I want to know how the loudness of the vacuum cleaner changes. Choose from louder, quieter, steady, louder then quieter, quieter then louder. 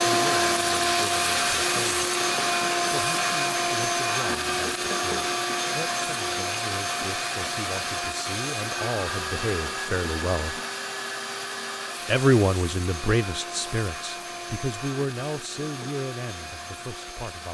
quieter.